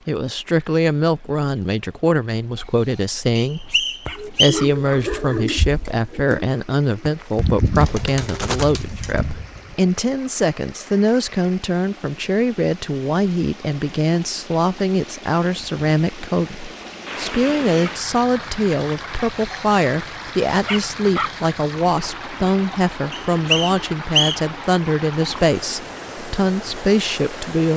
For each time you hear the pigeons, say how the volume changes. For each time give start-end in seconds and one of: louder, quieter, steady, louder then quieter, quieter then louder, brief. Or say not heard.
4.0-9.8 quieter then louder.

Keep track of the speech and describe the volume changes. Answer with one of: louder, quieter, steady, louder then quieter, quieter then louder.
steady.